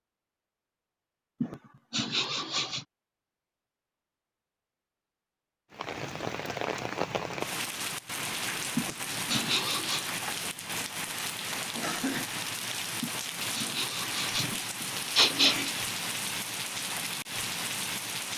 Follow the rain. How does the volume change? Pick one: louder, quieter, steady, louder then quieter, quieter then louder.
steady.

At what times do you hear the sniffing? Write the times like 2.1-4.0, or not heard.
1.4-2.9, 8.8-10.1, 13.0-15.8.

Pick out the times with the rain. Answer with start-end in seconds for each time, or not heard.
5.7-18.3.